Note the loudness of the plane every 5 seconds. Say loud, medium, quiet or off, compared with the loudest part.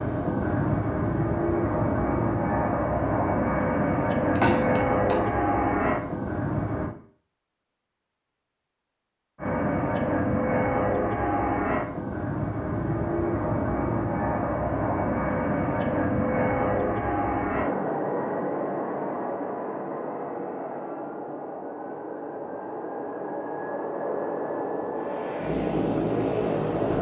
loud, loud, loud, loud, medium, loud.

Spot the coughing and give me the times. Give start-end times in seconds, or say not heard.
4.3-5.2.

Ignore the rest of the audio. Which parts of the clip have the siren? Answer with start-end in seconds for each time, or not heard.
not heard.